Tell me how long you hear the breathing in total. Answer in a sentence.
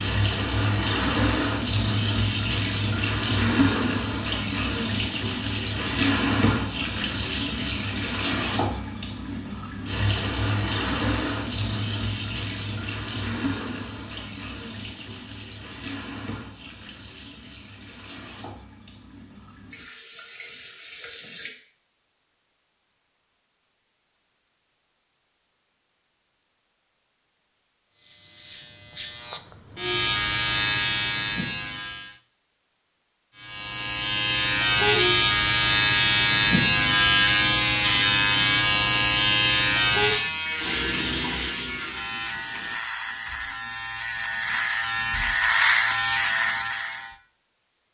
The breathing can't be heard in this clip.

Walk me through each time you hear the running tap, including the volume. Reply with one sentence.
You can hear the running tap from 0.0 to 21.6 s, getting quieter; and briefly from 40.5 to 42.8 s.